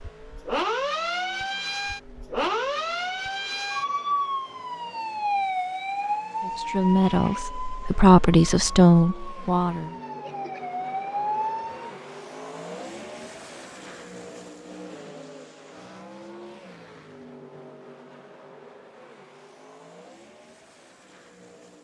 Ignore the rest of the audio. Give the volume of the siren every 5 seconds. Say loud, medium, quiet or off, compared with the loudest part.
loud, loud, loud, off, off.